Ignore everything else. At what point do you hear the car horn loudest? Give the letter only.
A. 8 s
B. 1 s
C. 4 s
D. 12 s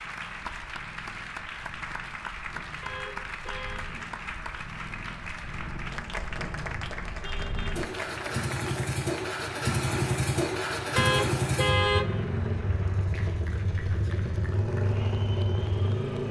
D.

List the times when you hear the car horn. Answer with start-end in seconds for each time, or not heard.
2.8-3.9, 7.2-8.4, 10.9-12.1.